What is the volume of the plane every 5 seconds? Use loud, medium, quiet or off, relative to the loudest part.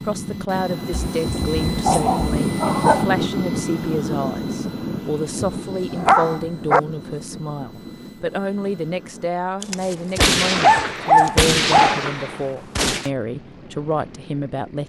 loud, medium, quiet.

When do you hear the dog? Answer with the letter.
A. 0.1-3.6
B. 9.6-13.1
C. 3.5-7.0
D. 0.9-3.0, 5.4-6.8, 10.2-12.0
D.